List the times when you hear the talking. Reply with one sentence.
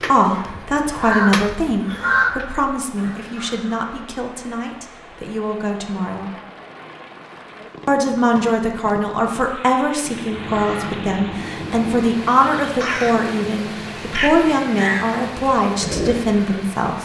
The talking can be heard from 0.1 to 6.3 s and from 7.8 to 16.9 s.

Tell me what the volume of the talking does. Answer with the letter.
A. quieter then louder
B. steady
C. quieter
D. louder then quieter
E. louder
A.